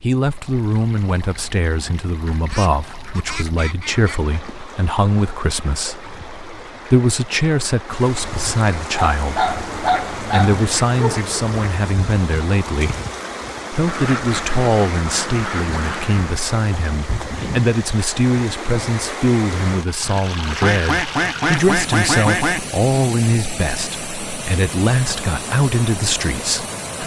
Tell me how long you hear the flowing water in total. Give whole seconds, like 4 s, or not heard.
27 s.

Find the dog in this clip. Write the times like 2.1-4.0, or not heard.
8.9-11.3.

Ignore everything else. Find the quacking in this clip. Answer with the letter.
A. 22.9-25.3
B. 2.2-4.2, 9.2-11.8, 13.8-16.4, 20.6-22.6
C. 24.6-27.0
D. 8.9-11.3
B.